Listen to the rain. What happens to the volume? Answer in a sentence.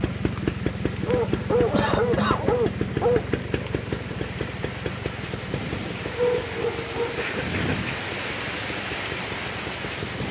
The loudness of the rain goes up.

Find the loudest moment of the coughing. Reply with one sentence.
The volume of the coughing peaks at 2 seconds.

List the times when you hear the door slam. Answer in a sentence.
You can't hear the door slam here.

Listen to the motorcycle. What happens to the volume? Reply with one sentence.
The loudness of the motorcycle goes down.